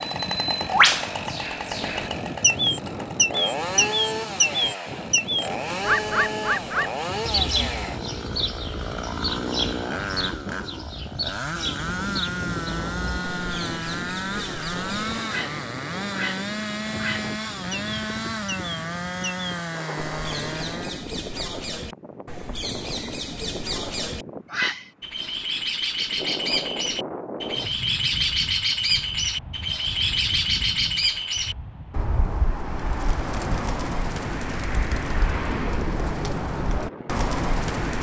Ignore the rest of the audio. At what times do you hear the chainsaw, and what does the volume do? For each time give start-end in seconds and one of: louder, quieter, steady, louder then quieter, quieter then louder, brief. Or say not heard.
0.0-21.1 steady.